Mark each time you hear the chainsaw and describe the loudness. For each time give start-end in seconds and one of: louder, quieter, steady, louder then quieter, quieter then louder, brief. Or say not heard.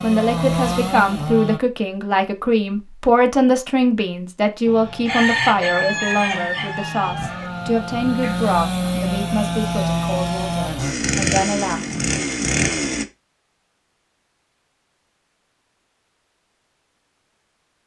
0.0-1.6 brief
4.7-13.1 louder.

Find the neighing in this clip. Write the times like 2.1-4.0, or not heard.
not heard.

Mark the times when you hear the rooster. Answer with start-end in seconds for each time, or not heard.
5.0-8.3.